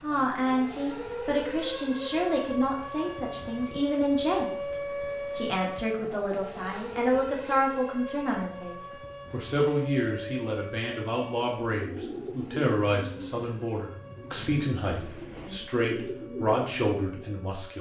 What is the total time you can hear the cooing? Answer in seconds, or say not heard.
6 s.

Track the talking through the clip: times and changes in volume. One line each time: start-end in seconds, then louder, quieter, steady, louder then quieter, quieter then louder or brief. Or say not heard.
0.0-17.7 steady.